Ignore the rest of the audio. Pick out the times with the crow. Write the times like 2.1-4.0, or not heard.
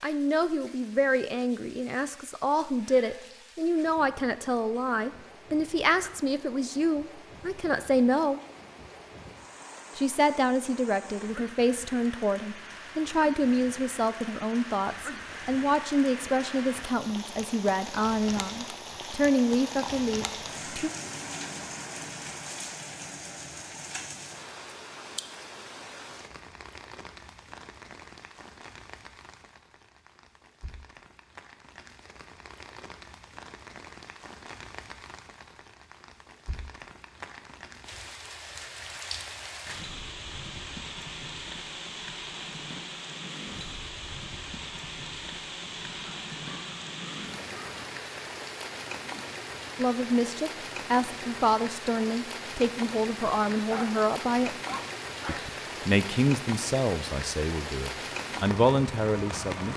45.5-47.9.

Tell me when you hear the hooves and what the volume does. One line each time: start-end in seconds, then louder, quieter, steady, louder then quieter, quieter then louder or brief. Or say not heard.
not heard.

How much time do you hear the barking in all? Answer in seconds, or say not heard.
2 s.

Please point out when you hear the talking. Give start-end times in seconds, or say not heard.
0.0-8.4, 9.9-20.9, 49.8-54.5, 55.2-59.7.